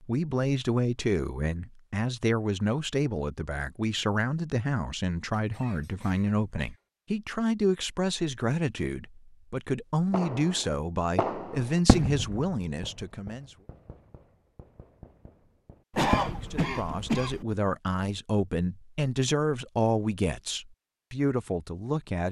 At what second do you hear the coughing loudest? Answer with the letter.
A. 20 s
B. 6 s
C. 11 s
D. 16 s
D.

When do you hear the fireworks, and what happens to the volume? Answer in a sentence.
The fireworks can be heard from 10.1 to 17.1 s, getting quieter then louder.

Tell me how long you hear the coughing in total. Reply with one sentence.
The coughing can be heard for 3 seconds in total.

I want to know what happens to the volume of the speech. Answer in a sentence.
The loudness of the speech stays about the same.